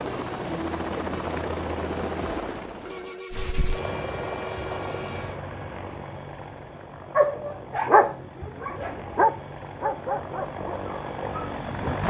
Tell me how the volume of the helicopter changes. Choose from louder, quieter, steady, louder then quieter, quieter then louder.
quieter then louder.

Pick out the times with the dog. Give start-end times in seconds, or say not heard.
7.2-11.9.